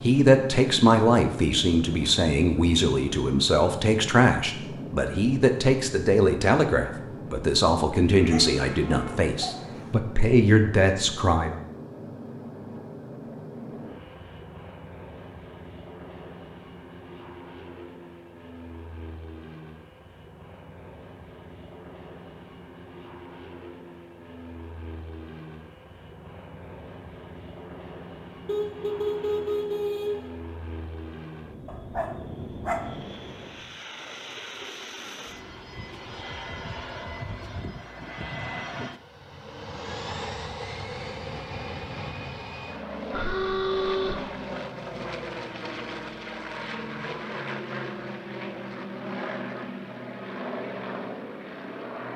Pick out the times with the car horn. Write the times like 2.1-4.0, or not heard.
8.2-9.9, 28.4-30.3, 43.1-44.1.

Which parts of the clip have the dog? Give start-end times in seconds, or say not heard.
8.2-9.9, 31.6-33.0.